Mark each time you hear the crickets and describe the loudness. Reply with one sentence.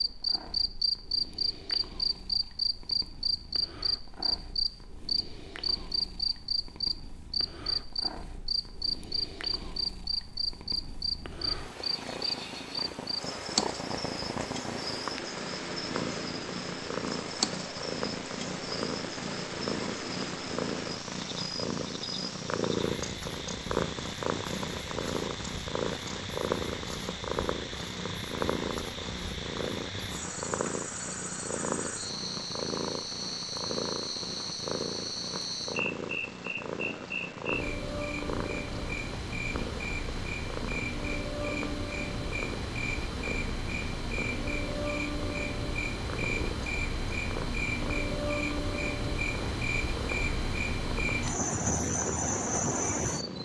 You can hear the crickets from 0.0 to 53.4 s, getting quieter then louder.